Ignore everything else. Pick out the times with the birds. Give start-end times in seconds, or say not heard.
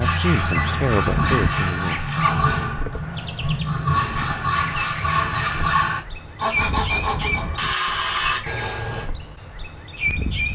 0.0-10.5.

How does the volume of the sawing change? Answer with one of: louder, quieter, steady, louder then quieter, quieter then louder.
steady.